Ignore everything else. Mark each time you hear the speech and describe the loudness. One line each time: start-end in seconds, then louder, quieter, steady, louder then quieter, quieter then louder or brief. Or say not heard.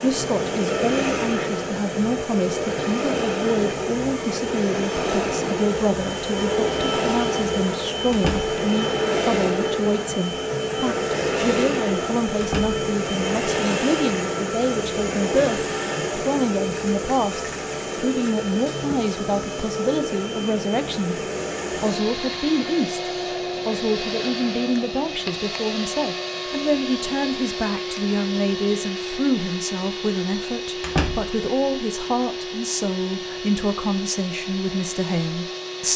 0.0-35.9 steady.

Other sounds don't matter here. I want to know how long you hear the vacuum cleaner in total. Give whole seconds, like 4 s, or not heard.
36 s.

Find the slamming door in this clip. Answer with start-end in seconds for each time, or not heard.
8.1-8.5, 12.4-12.8, 30.8-31.3.